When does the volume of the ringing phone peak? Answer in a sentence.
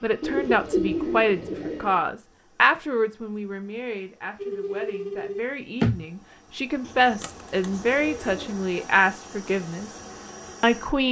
The loudest moment of the ringing phone is at 6 seconds.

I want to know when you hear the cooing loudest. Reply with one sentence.
The volume of the cooing peaks at 1 second.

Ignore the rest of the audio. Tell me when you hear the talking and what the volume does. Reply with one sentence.
The talking can be heard from 0.0 to 9.9 s, getting quieter then louder; and briefly from 10.6 to 11.0 s.